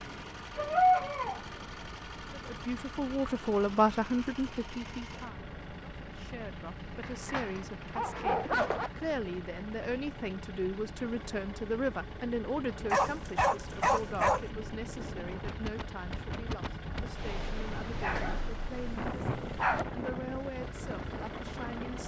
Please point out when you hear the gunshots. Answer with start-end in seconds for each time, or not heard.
not heard.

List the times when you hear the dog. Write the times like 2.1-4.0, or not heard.
0.6-1.4, 7.0-8.9, 12.9-14.4, 18.0-19.9.